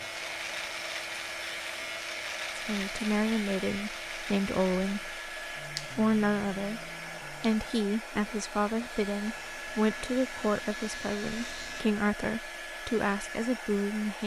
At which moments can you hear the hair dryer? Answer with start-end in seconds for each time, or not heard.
0.0-14.2.